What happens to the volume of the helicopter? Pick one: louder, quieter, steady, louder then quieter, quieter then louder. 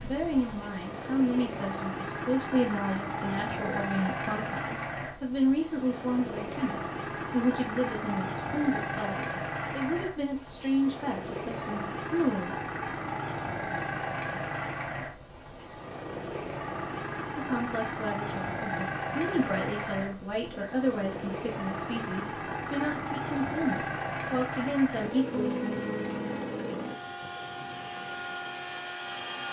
steady.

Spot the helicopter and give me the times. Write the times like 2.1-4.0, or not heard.
0.0-29.4.